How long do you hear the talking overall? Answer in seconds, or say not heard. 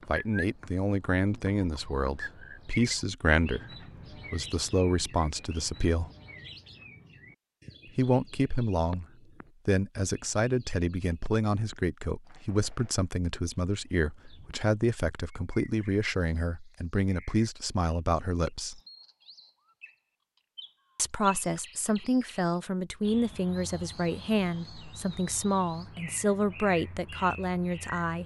23 s.